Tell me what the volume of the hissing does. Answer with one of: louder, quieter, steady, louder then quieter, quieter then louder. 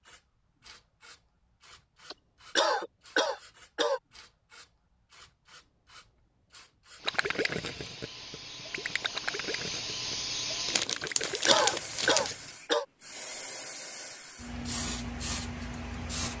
louder.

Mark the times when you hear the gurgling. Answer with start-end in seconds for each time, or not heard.
7.0-11.8.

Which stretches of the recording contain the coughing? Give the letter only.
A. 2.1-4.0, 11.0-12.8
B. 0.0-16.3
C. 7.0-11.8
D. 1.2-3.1
A.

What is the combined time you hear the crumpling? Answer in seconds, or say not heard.
2 s.